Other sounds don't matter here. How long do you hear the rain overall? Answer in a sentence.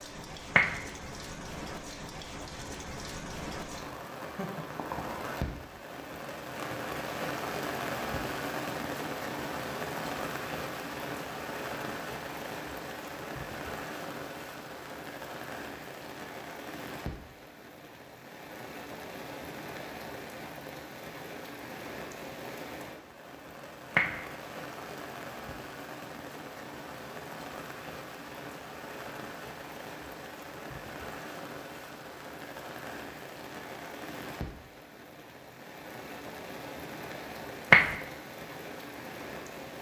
You can hear the rain for 40 seconds altogether.